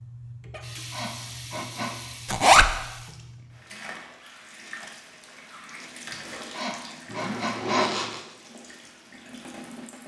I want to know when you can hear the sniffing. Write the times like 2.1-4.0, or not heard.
0.9-2.1, 6.5-7.9.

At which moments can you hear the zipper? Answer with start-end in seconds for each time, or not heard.
2.2-2.7, 7.0-8.2.